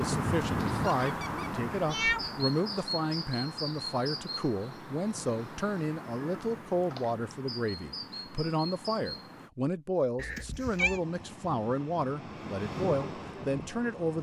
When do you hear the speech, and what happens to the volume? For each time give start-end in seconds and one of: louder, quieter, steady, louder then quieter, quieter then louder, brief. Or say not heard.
0.0-14.1 steady.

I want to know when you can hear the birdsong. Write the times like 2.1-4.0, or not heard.
0.0-9.5.